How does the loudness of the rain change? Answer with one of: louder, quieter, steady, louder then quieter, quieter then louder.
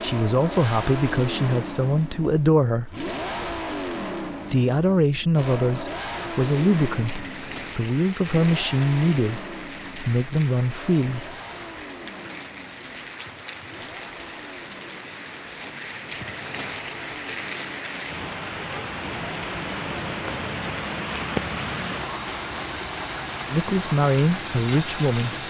louder.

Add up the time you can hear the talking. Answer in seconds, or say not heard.
12 s.